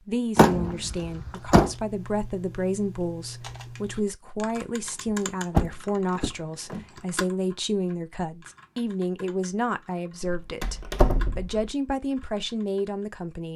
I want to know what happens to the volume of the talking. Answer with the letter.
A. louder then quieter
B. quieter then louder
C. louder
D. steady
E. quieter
D.